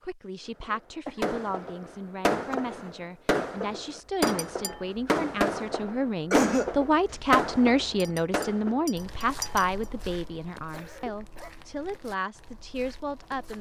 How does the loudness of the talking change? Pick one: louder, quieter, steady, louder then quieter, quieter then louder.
louder then quieter.